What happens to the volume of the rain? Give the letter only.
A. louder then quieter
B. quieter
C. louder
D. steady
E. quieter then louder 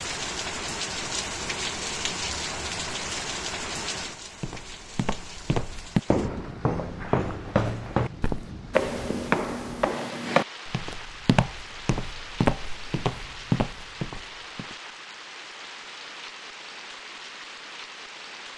B.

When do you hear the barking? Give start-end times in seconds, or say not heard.
not heard.